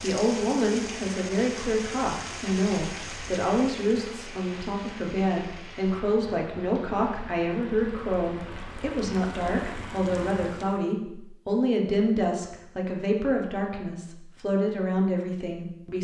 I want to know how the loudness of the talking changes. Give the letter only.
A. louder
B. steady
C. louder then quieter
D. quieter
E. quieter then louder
B.